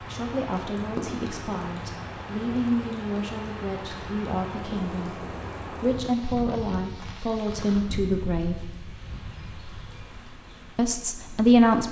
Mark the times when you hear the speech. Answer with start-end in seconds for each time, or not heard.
0.0-8.7, 10.8-11.8.